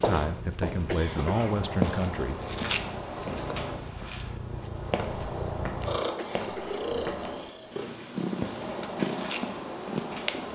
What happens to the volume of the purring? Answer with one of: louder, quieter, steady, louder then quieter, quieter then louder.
louder.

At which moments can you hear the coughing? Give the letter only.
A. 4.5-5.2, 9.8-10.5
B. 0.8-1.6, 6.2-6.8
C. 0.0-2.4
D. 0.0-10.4
B.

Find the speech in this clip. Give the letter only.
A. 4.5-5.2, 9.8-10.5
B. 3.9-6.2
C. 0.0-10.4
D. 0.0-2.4
D.